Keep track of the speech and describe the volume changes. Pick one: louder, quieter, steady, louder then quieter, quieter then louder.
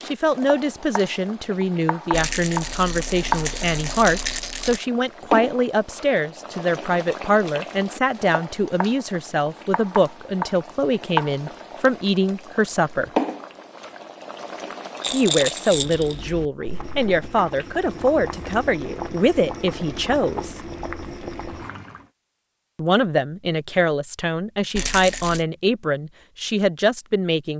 steady.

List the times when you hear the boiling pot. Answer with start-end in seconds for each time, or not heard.
0.0-22.1.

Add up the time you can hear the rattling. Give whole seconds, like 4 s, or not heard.
5 s.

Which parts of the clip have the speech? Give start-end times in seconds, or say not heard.
0.1-13.1, 15.1-20.6, 22.8-27.5.